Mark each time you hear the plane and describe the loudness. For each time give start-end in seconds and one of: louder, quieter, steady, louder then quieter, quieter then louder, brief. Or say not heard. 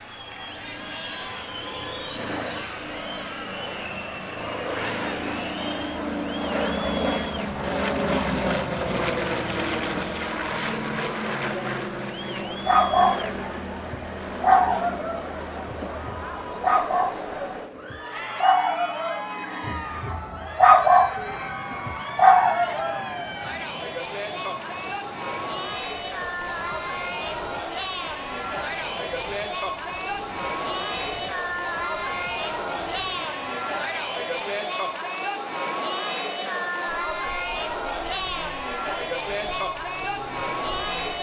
0.0-41.1 quieter.